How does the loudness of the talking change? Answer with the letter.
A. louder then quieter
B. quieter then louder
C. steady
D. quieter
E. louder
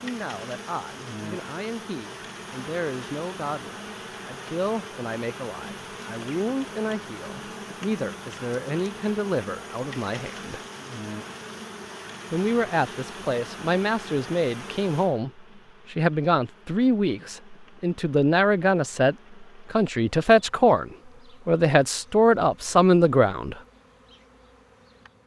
E.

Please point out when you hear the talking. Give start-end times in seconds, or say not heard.
0.0-10.7, 12.3-23.6.